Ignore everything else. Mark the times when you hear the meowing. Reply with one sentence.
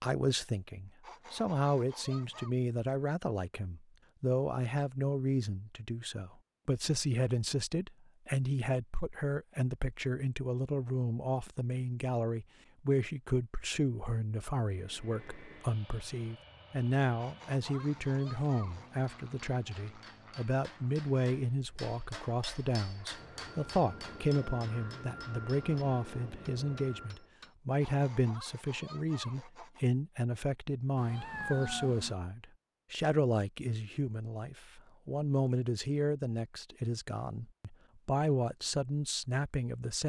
The meowing can be heard from 30.9 to 32.1 s.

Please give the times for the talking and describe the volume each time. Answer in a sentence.
You can hear the talking from 0.0 to 40.0 s, at a steady volume.